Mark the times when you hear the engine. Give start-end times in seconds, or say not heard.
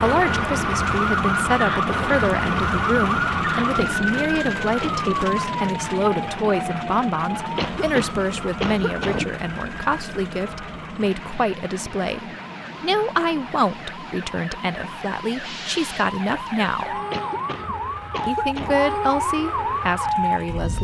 0.0-20.4.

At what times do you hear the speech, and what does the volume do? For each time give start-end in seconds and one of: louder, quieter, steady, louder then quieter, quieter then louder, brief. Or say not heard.
0.0-17.0 steady
18.2-20.7 brief.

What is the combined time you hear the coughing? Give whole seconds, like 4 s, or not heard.
5 s.